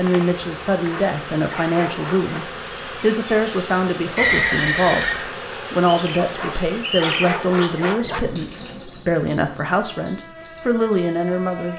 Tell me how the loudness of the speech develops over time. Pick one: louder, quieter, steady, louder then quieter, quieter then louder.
steady.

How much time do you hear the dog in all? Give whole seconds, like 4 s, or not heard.
4 s.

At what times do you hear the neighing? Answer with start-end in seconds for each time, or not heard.
4.2-5.3.